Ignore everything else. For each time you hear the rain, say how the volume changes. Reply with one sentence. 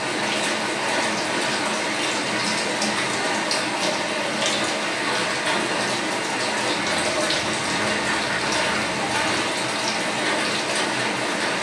The rain can be heard from 0.0 to 11.5 s, at a steady volume.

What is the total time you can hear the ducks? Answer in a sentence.
The ducks can be heard for 3 seconds in total.